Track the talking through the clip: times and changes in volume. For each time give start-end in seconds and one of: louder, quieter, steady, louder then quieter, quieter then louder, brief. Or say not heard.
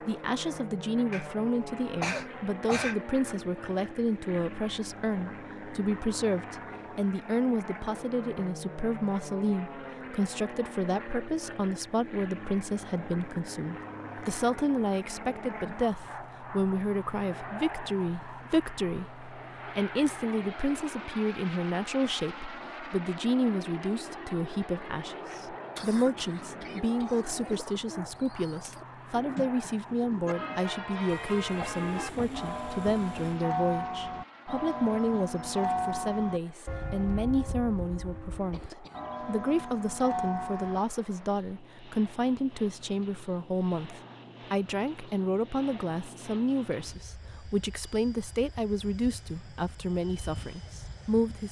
0.1-51.4 steady.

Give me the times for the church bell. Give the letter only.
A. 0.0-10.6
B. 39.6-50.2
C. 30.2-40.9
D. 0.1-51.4
C.